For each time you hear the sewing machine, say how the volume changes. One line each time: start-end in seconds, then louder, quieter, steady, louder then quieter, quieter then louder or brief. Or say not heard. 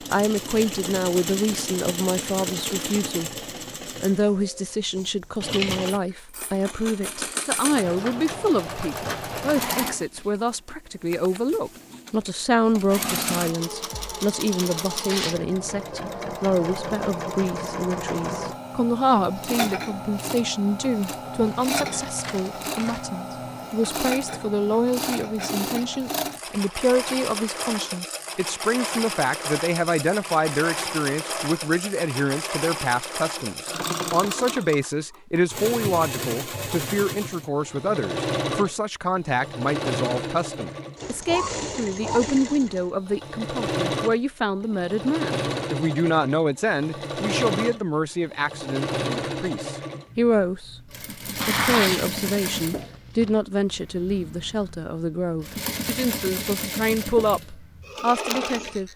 0.0-58.9 steady.